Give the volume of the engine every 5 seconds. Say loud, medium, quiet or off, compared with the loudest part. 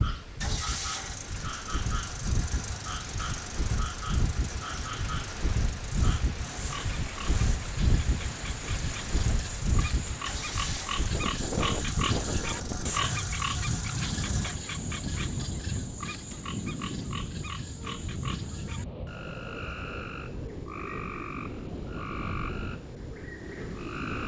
loud, loud, loud, off, off.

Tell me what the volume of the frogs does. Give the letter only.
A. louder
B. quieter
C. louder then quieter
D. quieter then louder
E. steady
C.